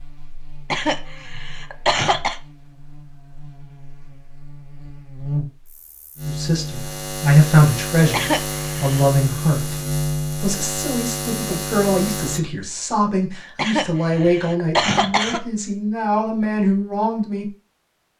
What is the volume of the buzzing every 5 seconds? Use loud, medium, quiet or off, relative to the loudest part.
quiet, loud, loud, off.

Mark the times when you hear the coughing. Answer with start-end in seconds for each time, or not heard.
0.7-2.4, 8.1-9.1, 13.6-15.4.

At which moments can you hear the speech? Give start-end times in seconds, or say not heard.
6.2-9.8, 10.4-17.5.